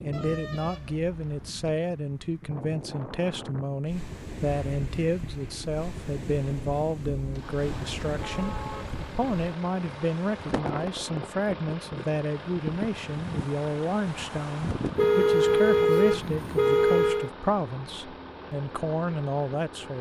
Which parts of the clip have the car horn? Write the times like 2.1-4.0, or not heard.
0.1-1.7, 7.6-8.9, 14.9-17.3.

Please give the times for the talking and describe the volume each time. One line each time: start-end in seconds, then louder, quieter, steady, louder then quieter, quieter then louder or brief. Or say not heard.
0.0-19.9 steady.